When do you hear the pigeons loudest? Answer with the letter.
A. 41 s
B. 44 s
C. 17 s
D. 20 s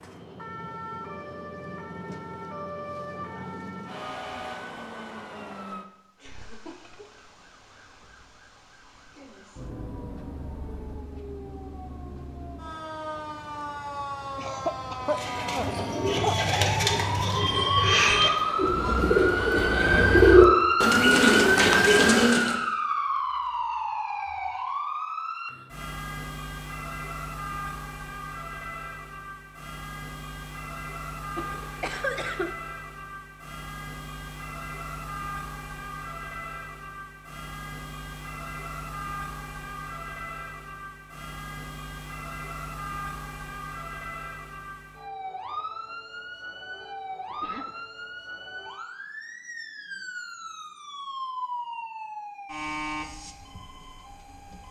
D.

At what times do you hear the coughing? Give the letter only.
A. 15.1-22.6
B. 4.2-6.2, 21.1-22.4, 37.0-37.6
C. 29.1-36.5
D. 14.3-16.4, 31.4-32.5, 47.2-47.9
D.